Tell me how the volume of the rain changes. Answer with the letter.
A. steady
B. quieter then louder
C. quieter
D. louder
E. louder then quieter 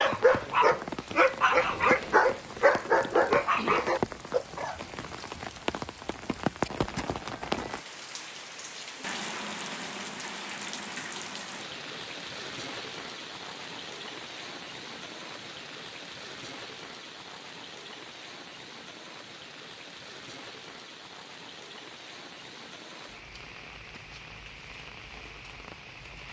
C.